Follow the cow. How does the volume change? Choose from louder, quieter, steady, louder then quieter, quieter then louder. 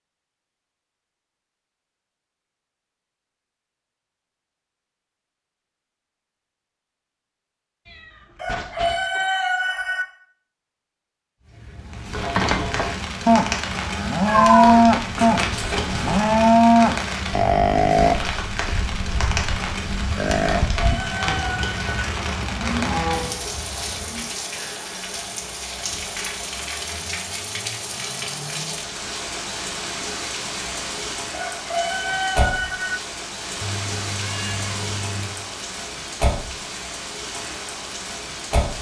quieter.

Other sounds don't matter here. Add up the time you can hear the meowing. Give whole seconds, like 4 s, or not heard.
5 s.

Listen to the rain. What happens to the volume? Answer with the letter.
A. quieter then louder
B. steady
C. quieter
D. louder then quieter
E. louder
B.